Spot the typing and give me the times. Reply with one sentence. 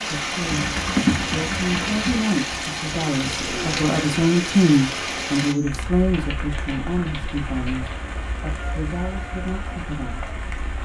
You can hear the typing from 0.5 to 2.4 s and from 6.1 to 8.0 s.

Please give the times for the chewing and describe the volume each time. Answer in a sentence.
You can't hear the chewing here.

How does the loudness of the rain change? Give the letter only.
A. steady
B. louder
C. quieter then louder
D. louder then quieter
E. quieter
E.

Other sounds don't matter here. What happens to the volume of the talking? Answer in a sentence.
The loudness of the talking goes up, then down.